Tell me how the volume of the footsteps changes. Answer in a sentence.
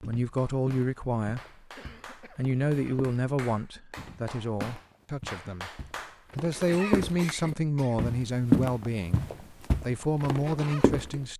The loudness of the footsteps goes up, then down.